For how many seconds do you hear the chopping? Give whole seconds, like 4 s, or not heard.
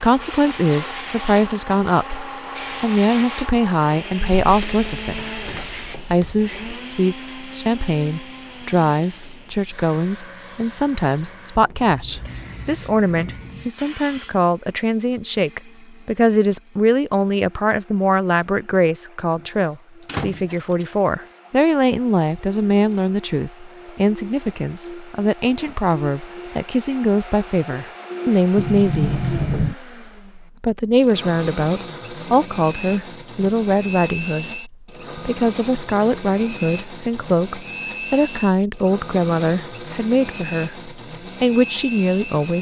not heard.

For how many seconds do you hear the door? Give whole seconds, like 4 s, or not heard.
4 s.